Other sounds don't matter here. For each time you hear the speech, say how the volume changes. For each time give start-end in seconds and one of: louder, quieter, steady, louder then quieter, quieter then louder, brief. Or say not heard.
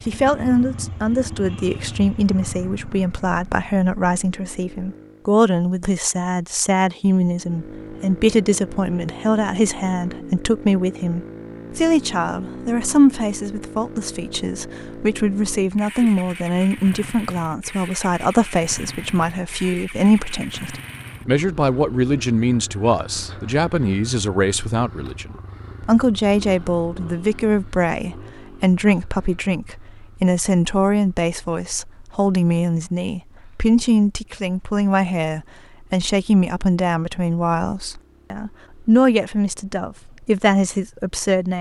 0.1-41.5 steady.